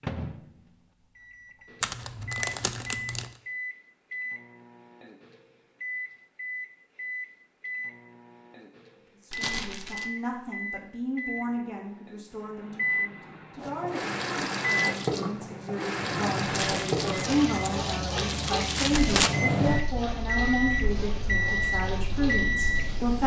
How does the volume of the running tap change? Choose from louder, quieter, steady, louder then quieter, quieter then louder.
quieter.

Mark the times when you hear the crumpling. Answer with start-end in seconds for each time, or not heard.
1.8-3.3, 9.3-10.1, 16.5-19.3.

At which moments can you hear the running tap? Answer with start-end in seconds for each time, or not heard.
13.6-23.2.